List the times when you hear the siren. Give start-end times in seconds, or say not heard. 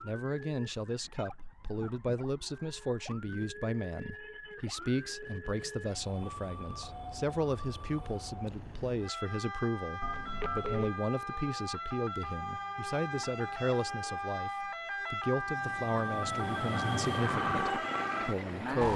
0.0-18.9.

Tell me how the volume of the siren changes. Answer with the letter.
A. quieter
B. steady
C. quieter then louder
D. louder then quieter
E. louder
E.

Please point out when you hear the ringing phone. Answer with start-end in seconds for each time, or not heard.
10.0-10.9.